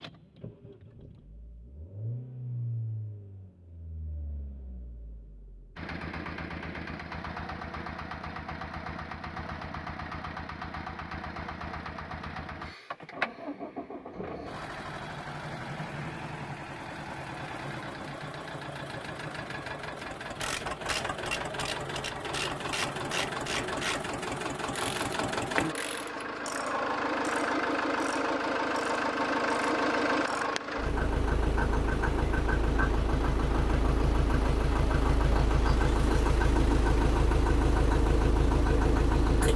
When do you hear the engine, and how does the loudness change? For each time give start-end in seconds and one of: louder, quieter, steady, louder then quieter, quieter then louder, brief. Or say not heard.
0.0-39.5 louder.